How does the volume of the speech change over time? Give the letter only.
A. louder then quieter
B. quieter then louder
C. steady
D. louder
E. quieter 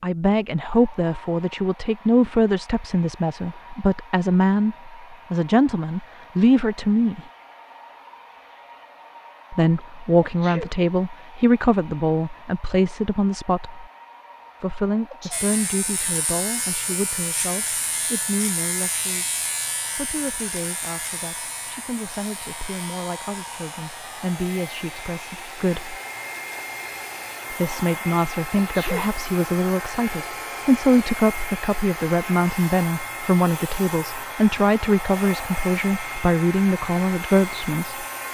B.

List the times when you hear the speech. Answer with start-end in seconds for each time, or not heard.
0.0-7.2, 9.5-13.8, 14.6-19.4, 19.9-25.9, 27.5-38.0.